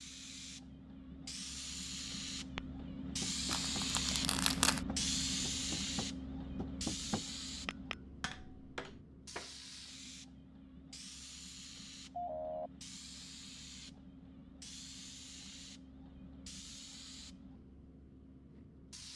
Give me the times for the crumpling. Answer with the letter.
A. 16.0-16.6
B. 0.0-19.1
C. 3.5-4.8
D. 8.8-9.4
C.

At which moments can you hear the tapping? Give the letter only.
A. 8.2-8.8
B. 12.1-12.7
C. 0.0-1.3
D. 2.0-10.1
D.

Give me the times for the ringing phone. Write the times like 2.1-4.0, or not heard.
12.1-12.7.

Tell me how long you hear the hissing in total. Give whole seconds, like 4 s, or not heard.
19 s.